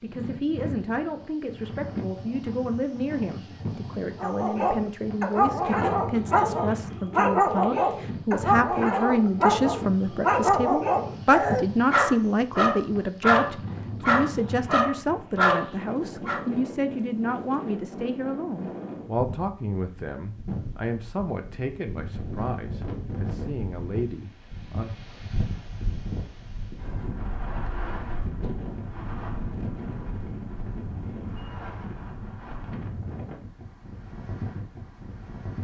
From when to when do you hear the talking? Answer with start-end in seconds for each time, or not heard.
0.0-24.9.